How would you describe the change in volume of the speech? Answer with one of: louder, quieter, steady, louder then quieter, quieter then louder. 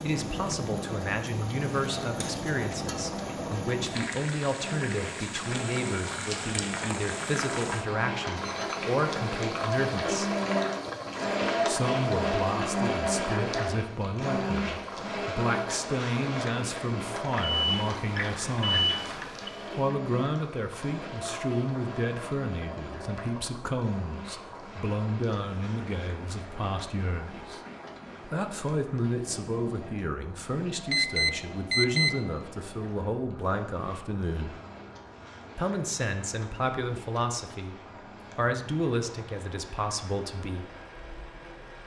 steady.